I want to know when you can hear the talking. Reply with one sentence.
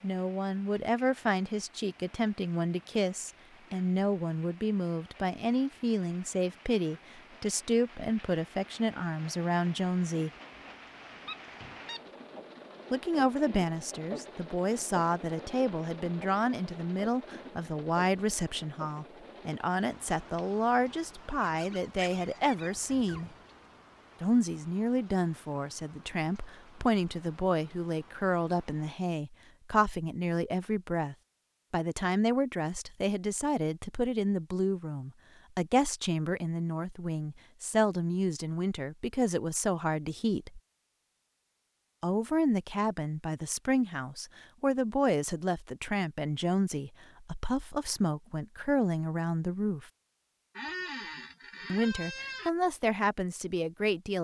The talking can be heard from 0.0 to 10.3 s, from 12.9 to 23.3 s, from 24.2 to 40.6 s, from 42.0 to 49.9 s and from 51.7 to 54.1 s.